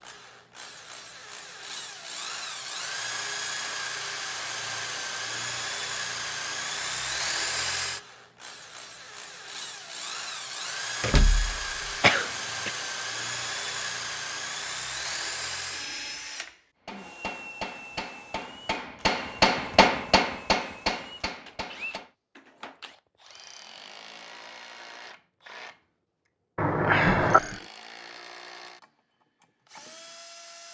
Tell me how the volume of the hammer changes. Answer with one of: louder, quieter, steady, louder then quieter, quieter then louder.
louder then quieter.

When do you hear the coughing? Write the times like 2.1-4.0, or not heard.
12.0-12.7, 26.6-27.6.